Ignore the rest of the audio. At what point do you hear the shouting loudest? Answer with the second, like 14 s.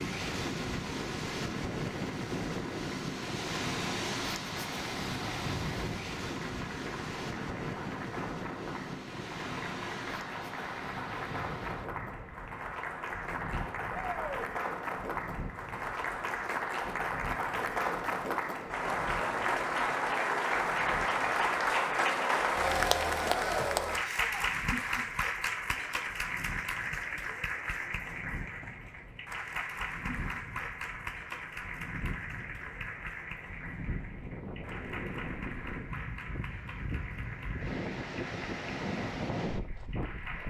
14 s.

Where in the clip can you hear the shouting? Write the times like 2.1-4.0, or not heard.
13.9-14.5, 24.0-24.4.